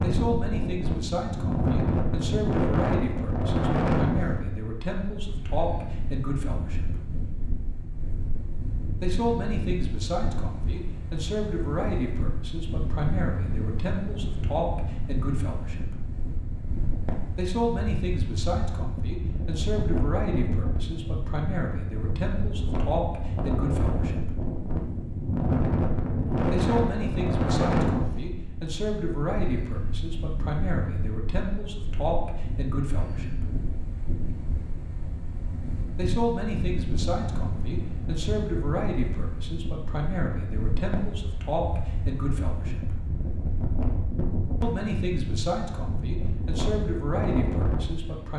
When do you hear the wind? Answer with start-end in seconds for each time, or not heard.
0.0-48.3.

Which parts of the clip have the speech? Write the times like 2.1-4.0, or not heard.
0.0-7.0, 9.0-16.0, 17.4-24.4, 26.5-33.5, 36.0-43.0, 44.6-48.3.